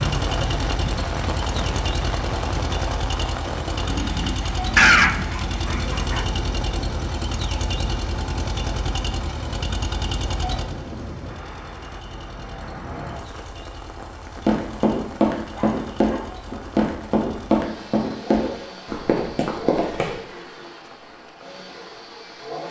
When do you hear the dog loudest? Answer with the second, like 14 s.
5 s.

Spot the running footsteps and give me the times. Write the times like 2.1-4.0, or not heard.
14.3-20.2.